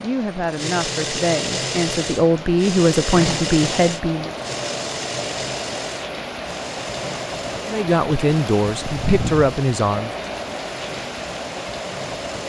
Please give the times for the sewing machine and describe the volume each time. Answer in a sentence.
You can hear the sewing machine from 0.0 to 12.4 s, getting quieter.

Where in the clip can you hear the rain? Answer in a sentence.
The rain can be heard from 0.0 to 12.4 s.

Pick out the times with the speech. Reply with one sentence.
You can hear the speech from 0.0 to 4.3 s and from 7.7 to 10.2 s.